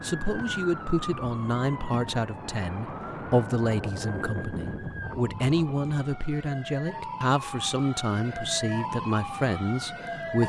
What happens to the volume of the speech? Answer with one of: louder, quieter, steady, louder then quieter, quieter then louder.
steady.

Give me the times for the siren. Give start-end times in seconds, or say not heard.
0.0-10.4.